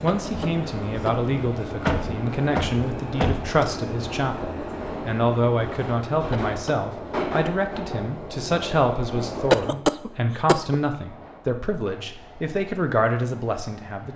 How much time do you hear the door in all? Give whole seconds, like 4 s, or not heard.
2 s.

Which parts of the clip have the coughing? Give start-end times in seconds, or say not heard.
0.1-1.3, 6.3-6.9, 9.5-10.8.